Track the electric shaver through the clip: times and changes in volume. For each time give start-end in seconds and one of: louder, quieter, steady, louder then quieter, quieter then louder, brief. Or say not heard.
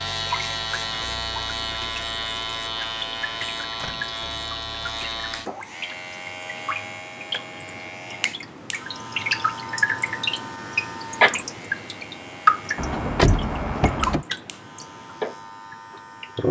0.0-16.4 quieter.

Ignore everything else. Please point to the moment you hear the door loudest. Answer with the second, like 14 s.
13 s.